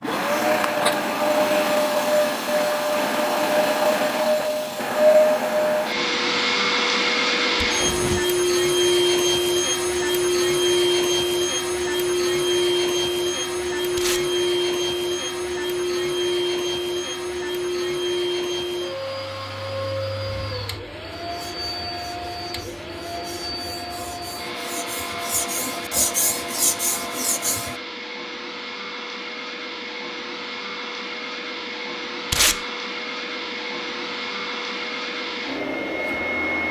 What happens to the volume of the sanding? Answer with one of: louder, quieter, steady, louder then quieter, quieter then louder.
louder.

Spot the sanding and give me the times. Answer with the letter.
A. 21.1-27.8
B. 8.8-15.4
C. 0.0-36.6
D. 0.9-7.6
A.